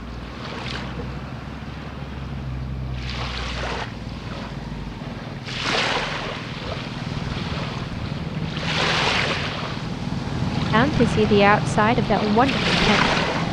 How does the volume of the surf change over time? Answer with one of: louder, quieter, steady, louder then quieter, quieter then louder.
louder.